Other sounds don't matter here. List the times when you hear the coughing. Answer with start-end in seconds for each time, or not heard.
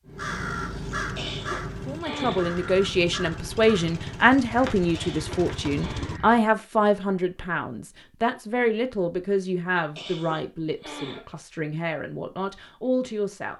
0.9-2.5, 4.9-6.1, 9.9-11.2.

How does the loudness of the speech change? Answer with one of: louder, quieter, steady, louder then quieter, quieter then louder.
quieter.